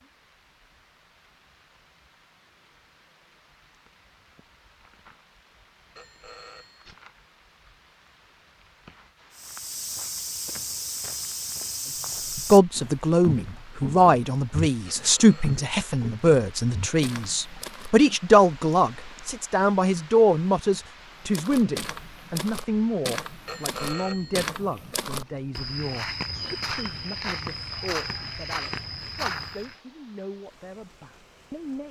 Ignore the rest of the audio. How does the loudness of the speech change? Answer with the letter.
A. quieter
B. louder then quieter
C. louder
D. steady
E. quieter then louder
A.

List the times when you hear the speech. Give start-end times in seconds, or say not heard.
12.3-31.8.